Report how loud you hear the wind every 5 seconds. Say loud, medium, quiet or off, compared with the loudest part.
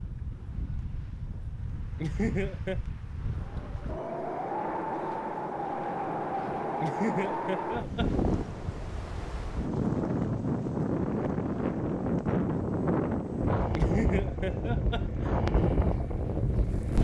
medium, loud, loud, loud.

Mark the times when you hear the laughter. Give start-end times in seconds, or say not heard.
2.0-2.8, 6.8-8.1, 13.8-15.4.